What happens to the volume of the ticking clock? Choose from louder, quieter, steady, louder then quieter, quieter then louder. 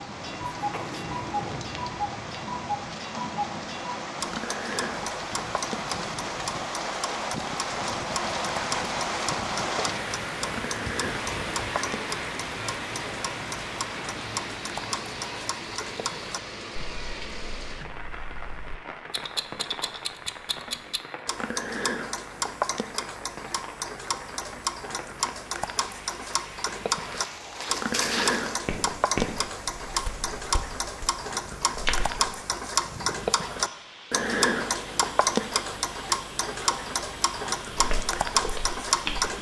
louder.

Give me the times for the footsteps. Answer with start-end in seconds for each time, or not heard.
0.0-3.1, 27.1-32.3, 37.7-39.3.